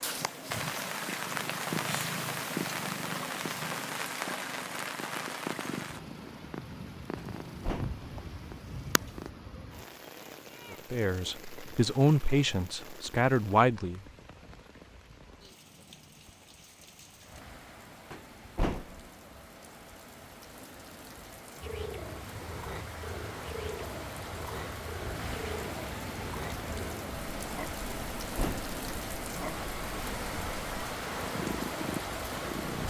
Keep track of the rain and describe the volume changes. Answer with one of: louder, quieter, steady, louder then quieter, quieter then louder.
quieter then louder.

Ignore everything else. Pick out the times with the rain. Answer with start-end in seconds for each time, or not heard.
0.0-32.8.